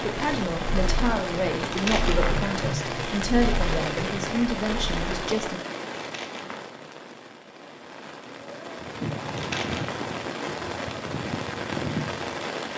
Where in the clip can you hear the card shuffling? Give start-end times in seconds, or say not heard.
1.6-2.5, 6.0-6.7, 9.2-10.0.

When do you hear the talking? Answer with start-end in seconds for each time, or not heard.
0.0-5.6.